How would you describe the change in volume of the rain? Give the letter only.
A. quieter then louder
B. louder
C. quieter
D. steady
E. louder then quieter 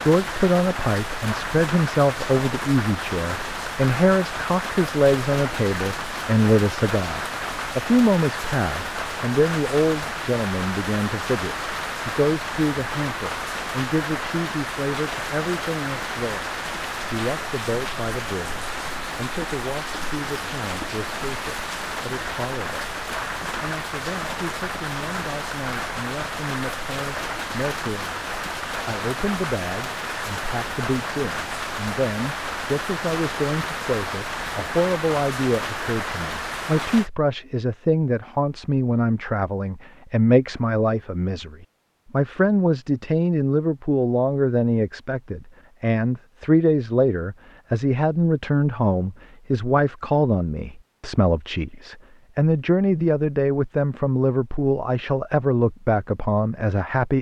D.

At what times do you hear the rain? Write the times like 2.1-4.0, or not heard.
0.0-37.1.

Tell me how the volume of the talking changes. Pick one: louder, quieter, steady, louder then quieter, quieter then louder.
quieter then louder.